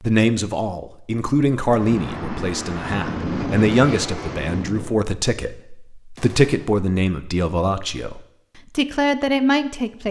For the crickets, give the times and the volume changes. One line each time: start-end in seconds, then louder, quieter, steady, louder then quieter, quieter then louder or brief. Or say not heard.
not heard.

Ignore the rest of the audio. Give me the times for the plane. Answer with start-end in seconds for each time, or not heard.
1.6-5.0.